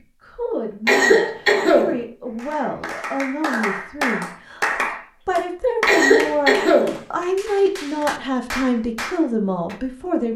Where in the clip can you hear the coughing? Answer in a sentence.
You can hear the coughing from 0.8 to 2.0 s and from 5.8 to 7.0 s.